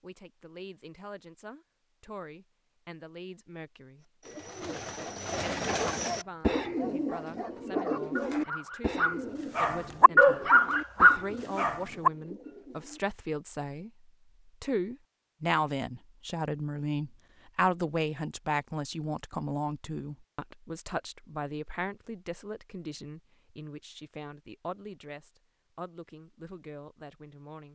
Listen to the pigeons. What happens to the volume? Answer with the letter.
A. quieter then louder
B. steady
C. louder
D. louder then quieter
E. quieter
E.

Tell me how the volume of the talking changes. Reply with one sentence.
The loudness of the talking goes up, then down.